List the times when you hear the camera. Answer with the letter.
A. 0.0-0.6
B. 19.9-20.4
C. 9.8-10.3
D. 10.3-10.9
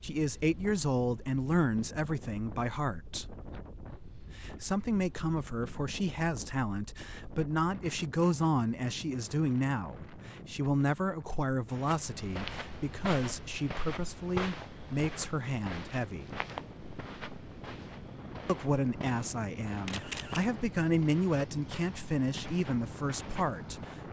B.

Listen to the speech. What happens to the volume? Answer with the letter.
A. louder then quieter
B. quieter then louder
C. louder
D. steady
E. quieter
D.